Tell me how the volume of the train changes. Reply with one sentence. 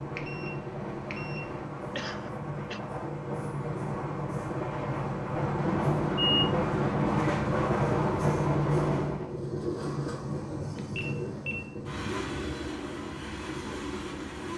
The loudness of the train goes up, then down.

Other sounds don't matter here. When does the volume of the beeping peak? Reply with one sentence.
The loudest moment of the beeping is at 6 seconds.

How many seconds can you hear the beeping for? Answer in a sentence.
The beeping can be heard for 4 seconds in total.